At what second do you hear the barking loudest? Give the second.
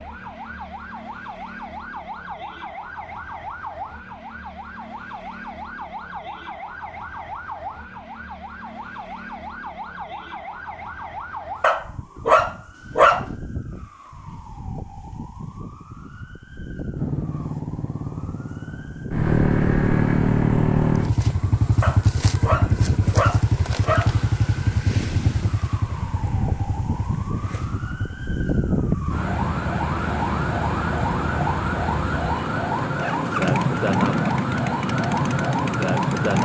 13 s.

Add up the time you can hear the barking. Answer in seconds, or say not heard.
4 s.